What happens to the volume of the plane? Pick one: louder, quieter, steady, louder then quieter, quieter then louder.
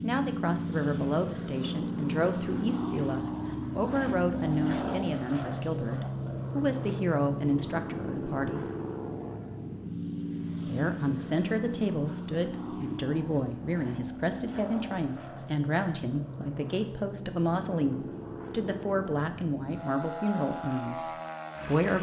quieter.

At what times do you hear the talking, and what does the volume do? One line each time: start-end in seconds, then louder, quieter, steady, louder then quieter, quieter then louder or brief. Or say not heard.
0.0-8.7 steady
10.7-21.9 steady.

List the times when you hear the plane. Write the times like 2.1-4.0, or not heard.
0.0-21.9.